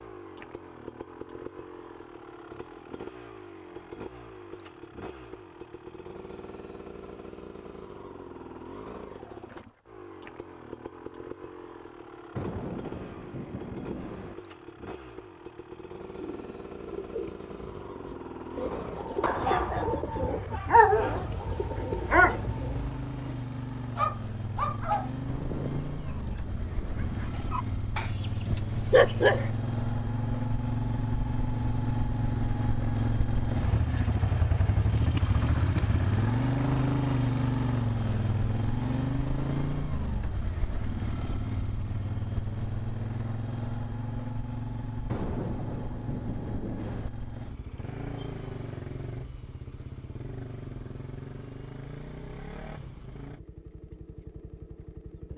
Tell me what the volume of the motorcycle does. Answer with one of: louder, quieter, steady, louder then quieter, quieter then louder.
louder then quieter.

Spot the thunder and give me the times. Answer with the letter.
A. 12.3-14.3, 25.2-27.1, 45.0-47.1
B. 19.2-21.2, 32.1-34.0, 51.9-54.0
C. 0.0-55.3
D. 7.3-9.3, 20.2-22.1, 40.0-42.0
A.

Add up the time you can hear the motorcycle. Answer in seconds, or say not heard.
55 s.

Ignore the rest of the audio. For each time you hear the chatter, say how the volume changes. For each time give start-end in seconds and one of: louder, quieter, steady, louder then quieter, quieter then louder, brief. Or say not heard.
not heard.